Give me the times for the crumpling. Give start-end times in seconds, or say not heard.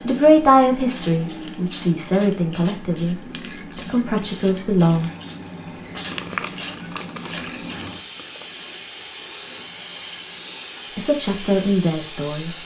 6.0-8.5.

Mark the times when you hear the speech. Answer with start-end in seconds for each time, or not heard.
0.0-5.1, 10.9-12.5.